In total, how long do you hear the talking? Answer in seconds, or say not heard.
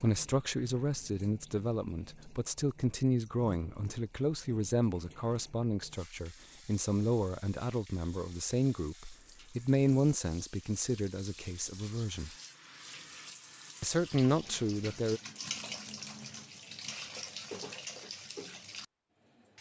14 s.